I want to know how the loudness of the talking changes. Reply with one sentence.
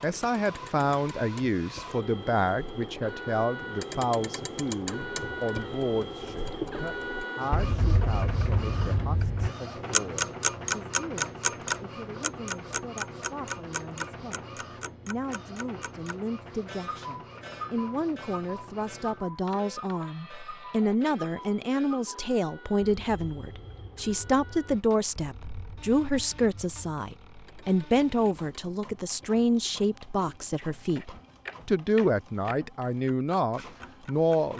The volume of the talking goes down, then up.